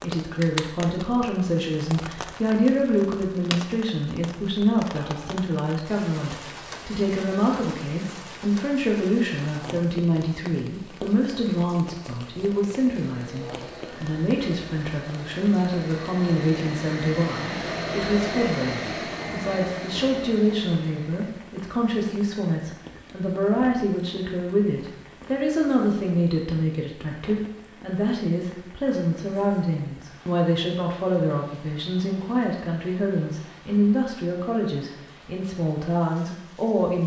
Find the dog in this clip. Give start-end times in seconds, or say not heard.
not heard.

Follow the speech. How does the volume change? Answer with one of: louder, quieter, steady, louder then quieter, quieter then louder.
steady.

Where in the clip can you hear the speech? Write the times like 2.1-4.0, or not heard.
0.0-37.0.